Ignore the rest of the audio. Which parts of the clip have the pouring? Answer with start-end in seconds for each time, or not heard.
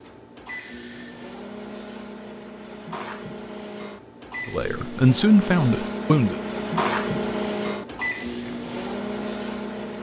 not heard.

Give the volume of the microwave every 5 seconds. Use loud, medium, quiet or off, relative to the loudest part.
medium, loud.